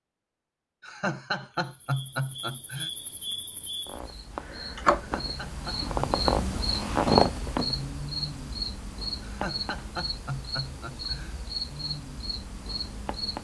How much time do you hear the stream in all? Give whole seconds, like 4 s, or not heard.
not heard.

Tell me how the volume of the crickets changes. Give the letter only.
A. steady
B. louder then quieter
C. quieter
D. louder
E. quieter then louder
B.